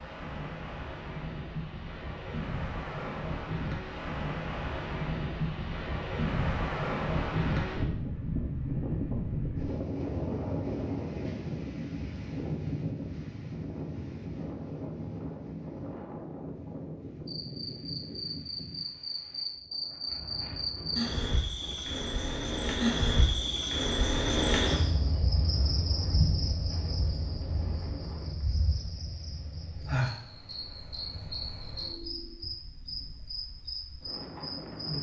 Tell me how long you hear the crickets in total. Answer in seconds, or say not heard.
18 s.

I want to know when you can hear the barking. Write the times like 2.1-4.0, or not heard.
not heard.